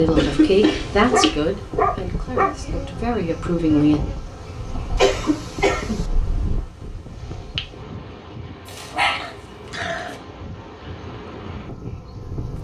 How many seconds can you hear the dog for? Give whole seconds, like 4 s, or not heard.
5 s.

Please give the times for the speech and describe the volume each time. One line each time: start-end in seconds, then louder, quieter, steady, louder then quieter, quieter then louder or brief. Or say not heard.
0.0-4.0 quieter then louder.